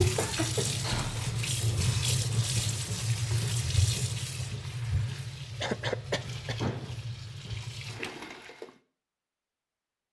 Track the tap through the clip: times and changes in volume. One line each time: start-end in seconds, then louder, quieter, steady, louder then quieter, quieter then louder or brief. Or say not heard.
0.0-8.8 quieter.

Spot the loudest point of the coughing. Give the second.
6 s.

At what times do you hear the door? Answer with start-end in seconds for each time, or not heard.
0.3-1.4, 6.6-7.0.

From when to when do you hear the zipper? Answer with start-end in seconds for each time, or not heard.
not heard.